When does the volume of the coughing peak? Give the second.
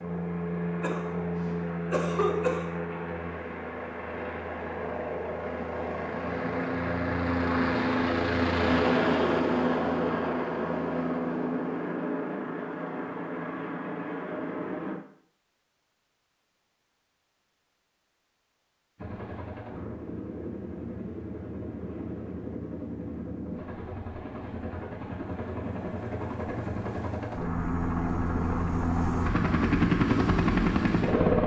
2 s.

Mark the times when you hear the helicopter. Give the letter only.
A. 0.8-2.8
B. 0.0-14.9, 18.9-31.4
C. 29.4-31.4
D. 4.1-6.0
B.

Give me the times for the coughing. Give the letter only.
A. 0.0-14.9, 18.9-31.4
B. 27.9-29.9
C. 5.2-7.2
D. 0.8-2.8
D.